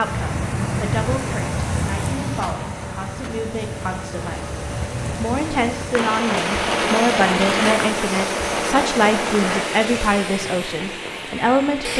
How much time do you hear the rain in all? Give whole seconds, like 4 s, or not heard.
12 s.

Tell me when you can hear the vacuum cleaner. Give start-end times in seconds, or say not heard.
0.0-11.9.